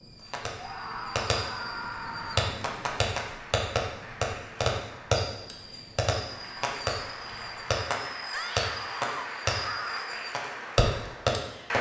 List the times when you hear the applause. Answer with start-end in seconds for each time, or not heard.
0.0-11.7.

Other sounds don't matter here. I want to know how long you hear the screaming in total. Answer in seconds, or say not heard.
4 s.